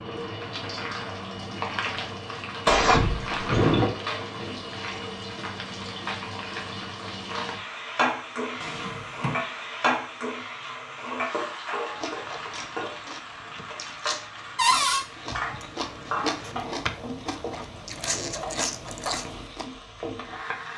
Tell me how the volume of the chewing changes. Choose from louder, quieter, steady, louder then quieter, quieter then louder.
louder.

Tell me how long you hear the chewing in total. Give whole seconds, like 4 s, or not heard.
8 s.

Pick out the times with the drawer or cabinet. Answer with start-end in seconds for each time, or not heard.
2.6-3.9, 8.6-9.4, 14.6-15.1.